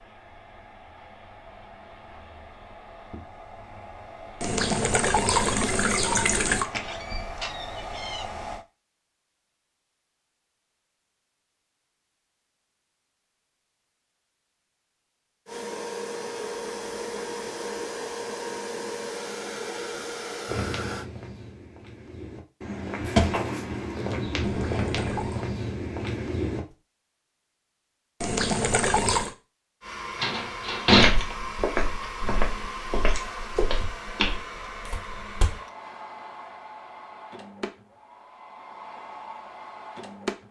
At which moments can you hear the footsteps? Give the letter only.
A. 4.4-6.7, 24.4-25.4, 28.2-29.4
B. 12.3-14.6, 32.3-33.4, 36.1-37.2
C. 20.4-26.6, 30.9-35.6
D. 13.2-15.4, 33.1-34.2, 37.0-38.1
C.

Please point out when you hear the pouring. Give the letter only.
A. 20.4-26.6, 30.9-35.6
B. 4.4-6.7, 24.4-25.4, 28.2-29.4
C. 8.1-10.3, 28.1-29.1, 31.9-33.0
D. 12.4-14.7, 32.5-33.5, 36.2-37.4
B.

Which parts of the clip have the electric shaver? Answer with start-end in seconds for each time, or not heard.
not heard.